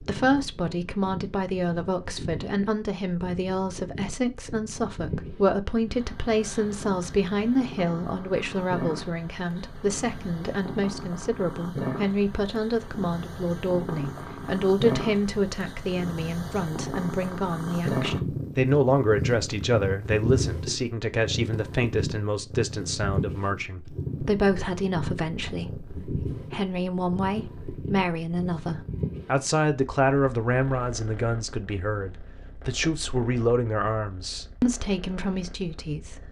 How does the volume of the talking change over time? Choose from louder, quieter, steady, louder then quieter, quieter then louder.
steady.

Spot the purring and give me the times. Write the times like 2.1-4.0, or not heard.
0.0-36.2.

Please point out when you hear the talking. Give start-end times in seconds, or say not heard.
0.0-36.2.